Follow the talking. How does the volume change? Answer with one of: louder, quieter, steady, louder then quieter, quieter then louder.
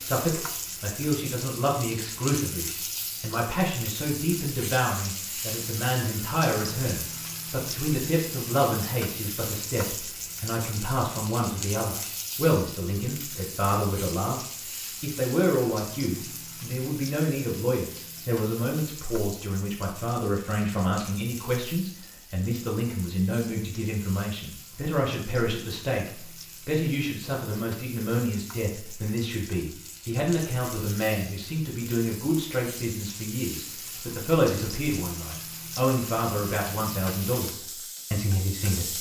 steady.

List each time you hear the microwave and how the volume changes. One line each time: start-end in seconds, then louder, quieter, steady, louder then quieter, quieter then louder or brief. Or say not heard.
not heard.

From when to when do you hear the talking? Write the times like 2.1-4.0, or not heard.
0.0-38.9.